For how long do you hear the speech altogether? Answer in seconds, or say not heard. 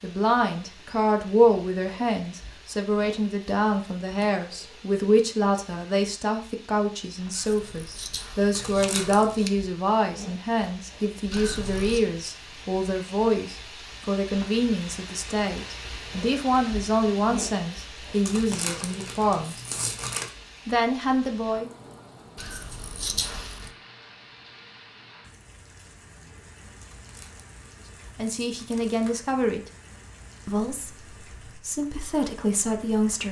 25 s.